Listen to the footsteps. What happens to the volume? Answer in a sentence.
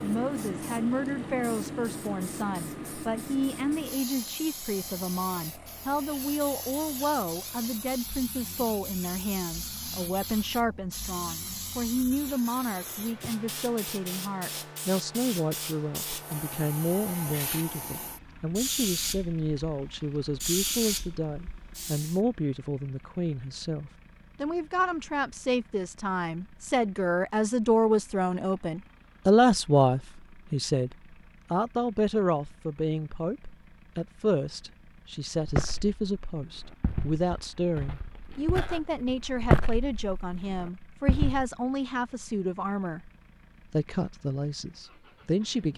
The loudness of the footsteps goes up, then down.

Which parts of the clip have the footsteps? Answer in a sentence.
You can hear the footsteps from 35.4 to 41.5 s.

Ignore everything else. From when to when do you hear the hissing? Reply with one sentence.
You can hear the hissing from 0.0 to 22.2 s.